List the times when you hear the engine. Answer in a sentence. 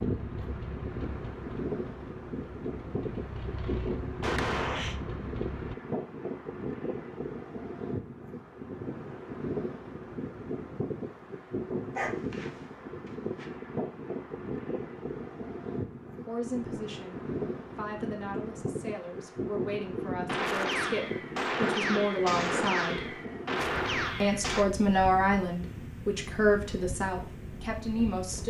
The engine can be heard from 0.0 to 5.8 s.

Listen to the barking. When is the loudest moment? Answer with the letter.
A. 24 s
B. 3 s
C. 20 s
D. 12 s
D.